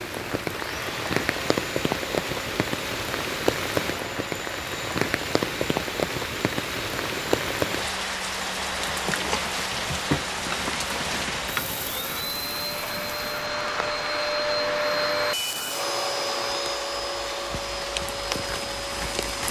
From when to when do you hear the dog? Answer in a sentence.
You can't hear the dog here.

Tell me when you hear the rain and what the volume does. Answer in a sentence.
The rain can be heard from 0.0 to 19.4 s, getting quieter.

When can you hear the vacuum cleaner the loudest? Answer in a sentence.
The loudest moment of the vacuum cleaner is at 15 seconds.